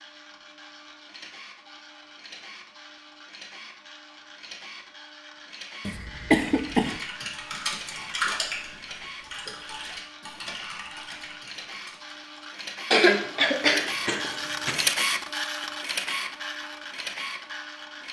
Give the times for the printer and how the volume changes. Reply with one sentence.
The printer can be heard from 0.0 to 18.0 s, getting louder.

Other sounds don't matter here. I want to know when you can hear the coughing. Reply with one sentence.
You can hear the coughing from 5.8 to 7.0 s and from 12.9 to 14.8 s.